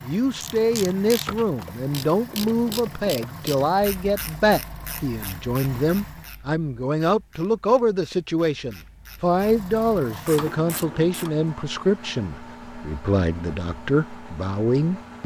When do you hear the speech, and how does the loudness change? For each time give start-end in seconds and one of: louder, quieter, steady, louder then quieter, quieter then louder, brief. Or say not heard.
0.0-15.2 steady.